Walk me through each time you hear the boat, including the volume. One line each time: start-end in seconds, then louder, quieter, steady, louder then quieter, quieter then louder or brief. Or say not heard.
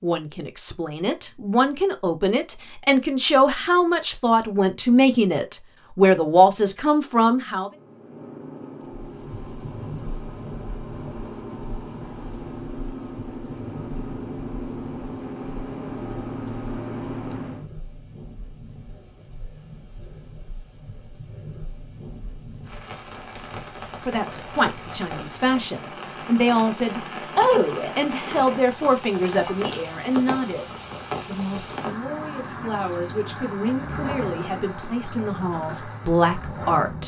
7.6-17.7 louder.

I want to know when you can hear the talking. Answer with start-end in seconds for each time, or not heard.
0.0-7.7, 24.1-37.0.